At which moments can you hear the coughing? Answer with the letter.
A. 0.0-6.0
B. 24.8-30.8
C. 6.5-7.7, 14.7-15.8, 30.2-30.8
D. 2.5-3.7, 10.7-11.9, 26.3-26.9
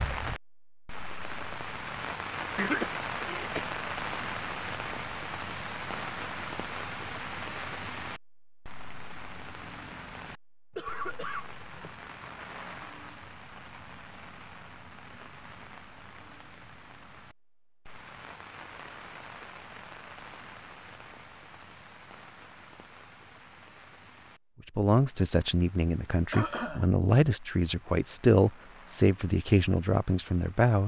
D.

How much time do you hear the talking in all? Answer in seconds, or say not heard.
6 s.